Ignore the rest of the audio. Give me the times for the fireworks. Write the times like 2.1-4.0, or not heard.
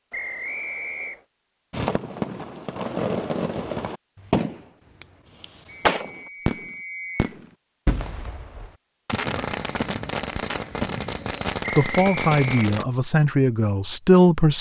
1.7-12.8.